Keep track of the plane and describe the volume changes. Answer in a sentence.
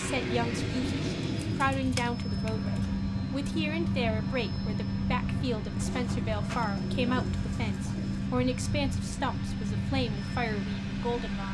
The loudness of the plane stays about the same.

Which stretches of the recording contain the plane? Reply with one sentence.
You can hear the plane from 0.0 to 11.4 s.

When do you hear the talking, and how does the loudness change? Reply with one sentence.
You can hear the talking from 0.0 to 11.4 s, at a steady volume.